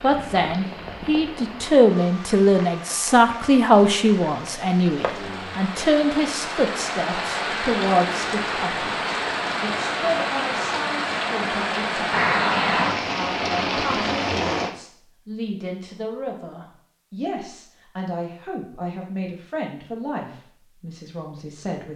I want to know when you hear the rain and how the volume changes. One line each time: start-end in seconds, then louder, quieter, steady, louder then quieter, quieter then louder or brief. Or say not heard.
0.0-14.7 louder.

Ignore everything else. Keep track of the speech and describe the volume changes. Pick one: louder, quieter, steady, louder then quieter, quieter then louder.
quieter.